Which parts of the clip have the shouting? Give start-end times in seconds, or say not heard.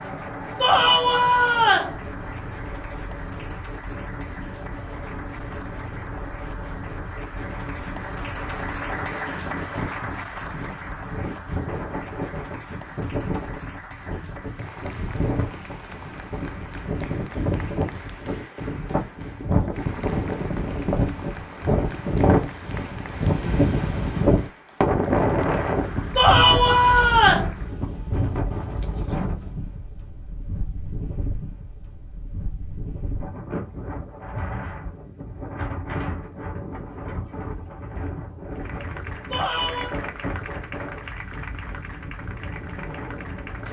0.6-1.9, 26.1-27.5, 39.3-40.0.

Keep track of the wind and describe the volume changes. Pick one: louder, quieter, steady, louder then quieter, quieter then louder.
louder then quieter.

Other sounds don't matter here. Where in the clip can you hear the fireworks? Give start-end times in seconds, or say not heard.
not heard.